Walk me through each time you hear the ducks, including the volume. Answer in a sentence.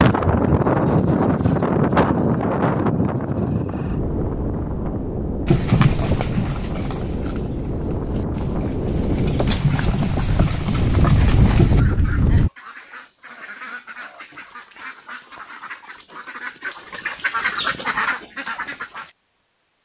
You can hear the ducks from 11.8 to 19.1 s, getting louder.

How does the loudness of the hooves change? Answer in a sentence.
The loudness of the hooves goes down, then up.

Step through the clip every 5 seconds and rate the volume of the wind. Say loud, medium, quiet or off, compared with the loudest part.
loud, medium, loud, off.